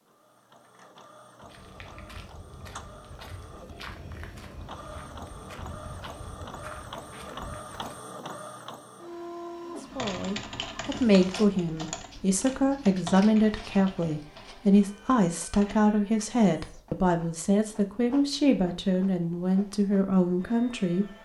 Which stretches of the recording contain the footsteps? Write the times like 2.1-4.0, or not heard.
1.4-8.2.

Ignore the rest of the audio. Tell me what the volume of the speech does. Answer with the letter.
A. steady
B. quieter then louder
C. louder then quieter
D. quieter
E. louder
A.